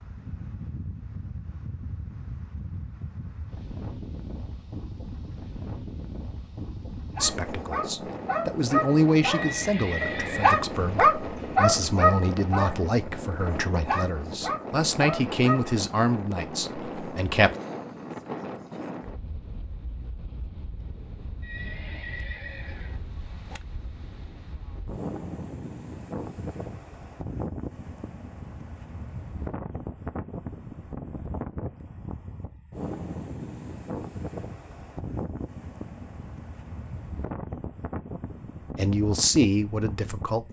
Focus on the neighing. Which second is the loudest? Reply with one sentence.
The volume of the neighing peaks at 10 seconds.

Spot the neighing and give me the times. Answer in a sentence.
You can hear the neighing from 9.3 to 10.6 s and from 21.4 to 23.0 s.